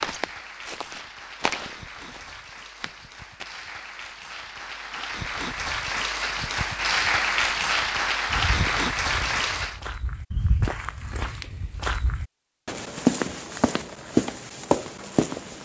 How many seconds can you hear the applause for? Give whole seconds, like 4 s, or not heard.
10 s.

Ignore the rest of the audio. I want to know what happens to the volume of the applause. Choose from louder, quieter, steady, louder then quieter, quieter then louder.
louder.